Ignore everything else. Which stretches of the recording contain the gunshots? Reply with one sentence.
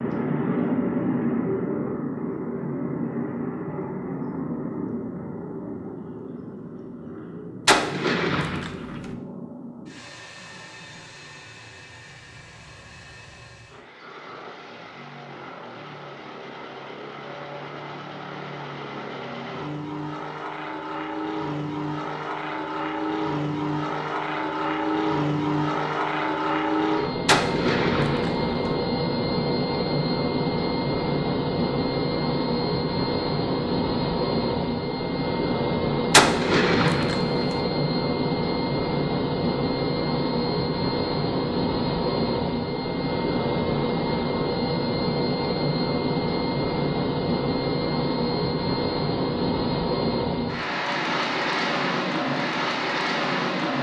The gunshots can be heard from 7.7 to 9.2 s, from 27.2 to 28.8 s and from 36.1 to 37.6 s.